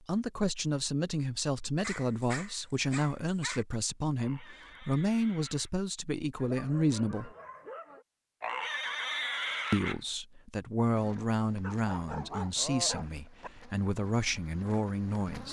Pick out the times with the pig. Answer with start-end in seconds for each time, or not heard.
4.2-5.7, 8.4-10.0.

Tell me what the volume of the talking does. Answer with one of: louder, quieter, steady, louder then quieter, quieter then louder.
steady.